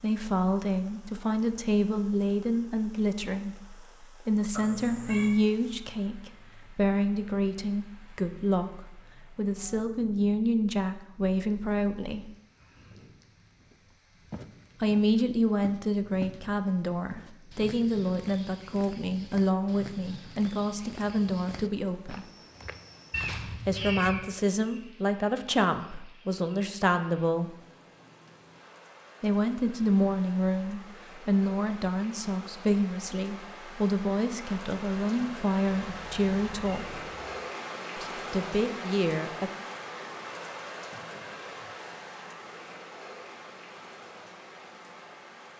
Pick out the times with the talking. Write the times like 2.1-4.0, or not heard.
0.0-12.3, 14.8-22.2, 23.6-27.6, 29.2-37.0, 38.0-39.5.